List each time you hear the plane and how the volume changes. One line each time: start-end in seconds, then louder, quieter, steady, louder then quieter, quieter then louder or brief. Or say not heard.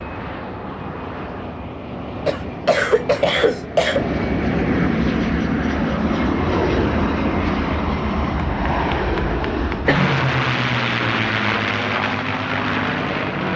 0.0-13.5 louder.